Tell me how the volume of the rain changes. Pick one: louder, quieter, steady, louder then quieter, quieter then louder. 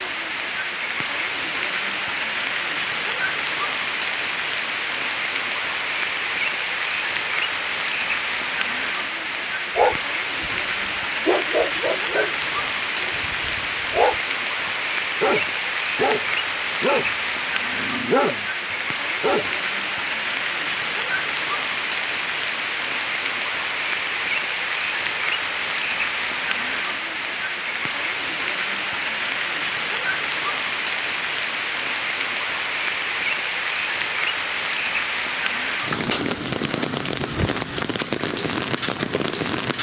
steady.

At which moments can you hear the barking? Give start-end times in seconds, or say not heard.
9.8-10.6, 11.2-12.3, 13.0-19.6.